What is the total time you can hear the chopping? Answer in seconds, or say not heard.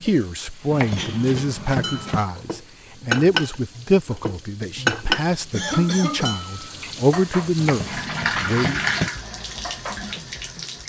3 s.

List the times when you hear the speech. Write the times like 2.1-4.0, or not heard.
0.0-8.8.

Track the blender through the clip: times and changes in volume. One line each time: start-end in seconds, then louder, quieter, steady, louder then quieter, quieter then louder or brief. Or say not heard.
not heard.